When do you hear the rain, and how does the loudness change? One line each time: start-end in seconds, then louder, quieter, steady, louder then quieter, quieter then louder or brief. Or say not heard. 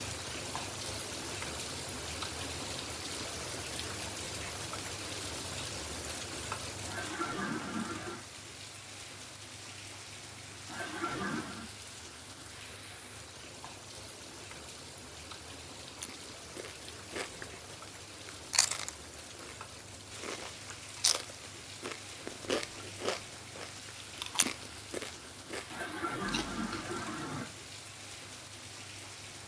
0.0-29.4 quieter.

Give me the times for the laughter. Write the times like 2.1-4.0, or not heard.
6.8-8.2, 10.7-11.7, 25.7-27.4.